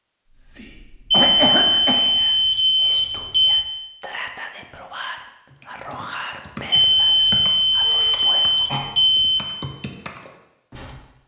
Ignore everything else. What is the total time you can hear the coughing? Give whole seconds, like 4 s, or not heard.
2 s.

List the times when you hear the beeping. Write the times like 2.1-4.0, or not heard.
1.1-3.6, 6.7-9.4.